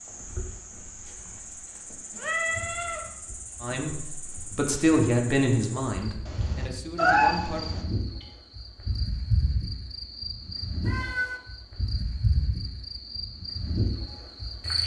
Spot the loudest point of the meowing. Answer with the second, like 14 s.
7 s.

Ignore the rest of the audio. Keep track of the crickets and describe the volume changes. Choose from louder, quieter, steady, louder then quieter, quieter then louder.
louder.